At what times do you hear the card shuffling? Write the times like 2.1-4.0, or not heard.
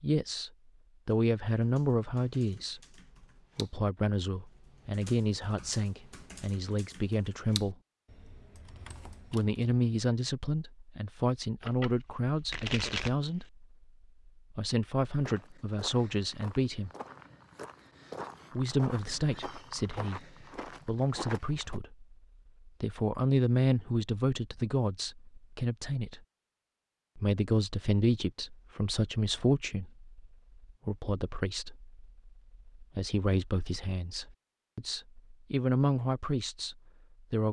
11.6-13.5.